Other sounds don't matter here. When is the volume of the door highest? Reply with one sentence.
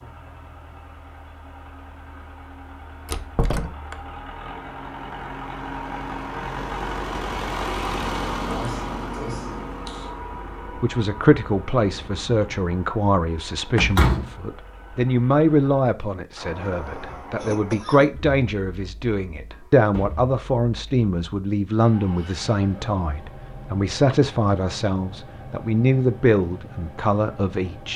The volume of the door peaks at 14 seconds.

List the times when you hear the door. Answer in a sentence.
You can hear the door from 3.0 to 4.0 s, from 13.8 to 14.3 s and from 19.9 to 20.3 s.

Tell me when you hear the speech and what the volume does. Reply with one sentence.
The speech can be heard from 10.8 to 27.9 s, at a steady volume.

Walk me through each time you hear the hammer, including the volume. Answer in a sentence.
The hammer can't be heard in this clip.